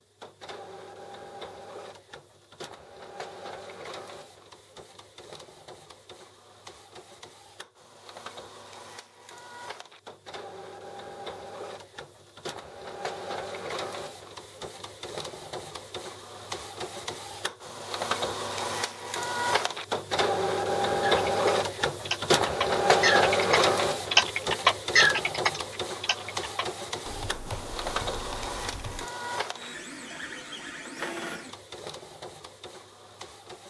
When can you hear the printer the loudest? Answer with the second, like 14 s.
23 s.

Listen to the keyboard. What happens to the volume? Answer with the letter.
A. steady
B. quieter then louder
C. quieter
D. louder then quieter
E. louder
D.